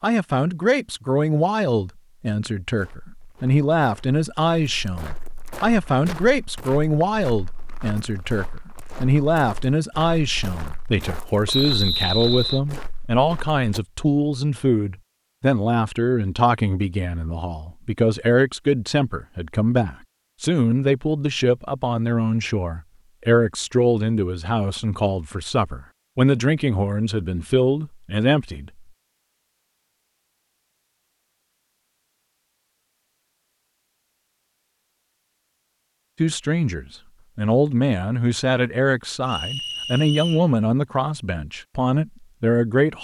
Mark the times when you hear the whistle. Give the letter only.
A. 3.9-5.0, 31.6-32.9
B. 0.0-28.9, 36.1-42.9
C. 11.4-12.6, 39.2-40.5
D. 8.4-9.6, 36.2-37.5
C.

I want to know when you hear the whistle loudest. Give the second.
12 s.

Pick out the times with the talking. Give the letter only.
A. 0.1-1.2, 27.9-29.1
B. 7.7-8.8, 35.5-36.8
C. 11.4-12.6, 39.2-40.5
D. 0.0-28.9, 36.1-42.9
D.